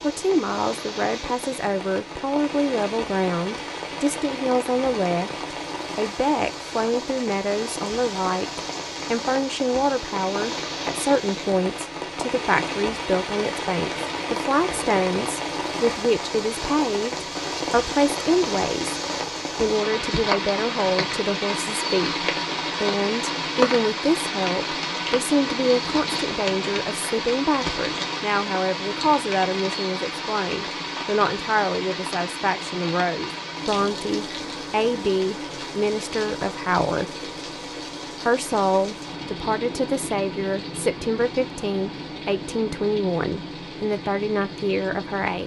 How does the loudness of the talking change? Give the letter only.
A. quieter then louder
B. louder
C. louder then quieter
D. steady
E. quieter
D.